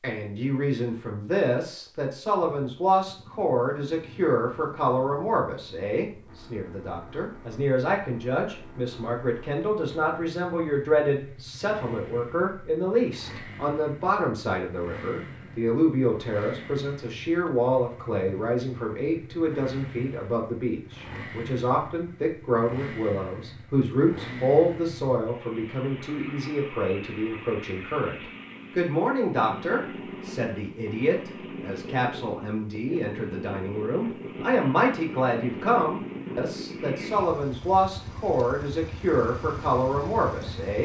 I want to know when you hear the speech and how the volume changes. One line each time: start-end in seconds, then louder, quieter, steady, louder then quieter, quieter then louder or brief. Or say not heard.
0.0-40.8 steady.